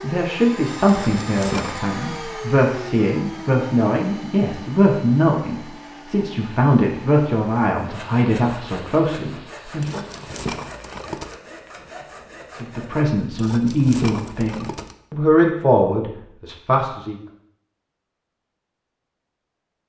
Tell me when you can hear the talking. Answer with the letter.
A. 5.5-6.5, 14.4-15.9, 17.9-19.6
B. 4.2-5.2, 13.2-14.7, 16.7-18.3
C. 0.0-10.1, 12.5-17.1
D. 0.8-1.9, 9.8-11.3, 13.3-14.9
C.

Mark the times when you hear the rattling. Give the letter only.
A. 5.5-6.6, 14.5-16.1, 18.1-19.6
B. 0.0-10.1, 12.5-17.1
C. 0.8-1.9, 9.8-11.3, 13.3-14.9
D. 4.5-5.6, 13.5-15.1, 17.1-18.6
C.